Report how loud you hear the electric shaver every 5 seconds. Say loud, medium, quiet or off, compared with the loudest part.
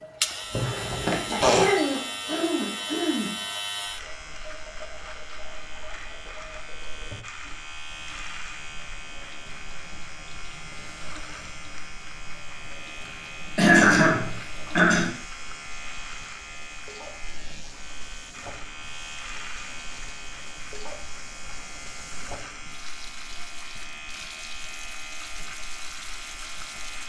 loud, medium, medium, medium, medium, medium.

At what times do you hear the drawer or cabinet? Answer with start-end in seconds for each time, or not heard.
0.5-1.6.